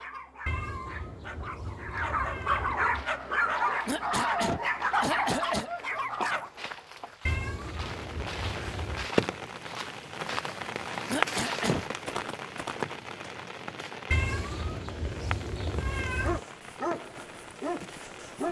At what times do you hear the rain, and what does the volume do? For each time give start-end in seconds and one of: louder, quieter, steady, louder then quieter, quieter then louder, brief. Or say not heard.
7.6-18.4 quieter.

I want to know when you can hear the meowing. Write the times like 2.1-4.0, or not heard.
0.5-3.0, 7.2-9.1, 14.1-16.4.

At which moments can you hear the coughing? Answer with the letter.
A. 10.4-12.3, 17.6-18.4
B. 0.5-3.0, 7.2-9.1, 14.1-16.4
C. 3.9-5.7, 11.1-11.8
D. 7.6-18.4
C.